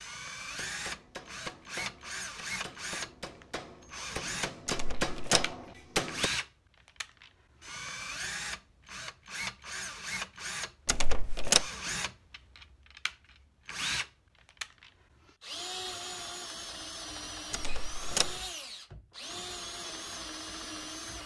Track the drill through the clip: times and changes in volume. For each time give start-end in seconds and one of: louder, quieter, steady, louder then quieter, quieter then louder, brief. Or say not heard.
0.0-21.2 steady.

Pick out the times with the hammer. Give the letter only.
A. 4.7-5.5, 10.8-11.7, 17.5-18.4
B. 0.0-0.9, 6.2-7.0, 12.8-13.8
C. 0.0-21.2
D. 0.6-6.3
D.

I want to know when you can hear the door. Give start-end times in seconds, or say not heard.
4.7-5.5, 10.8-11.7, 17.5-18.4.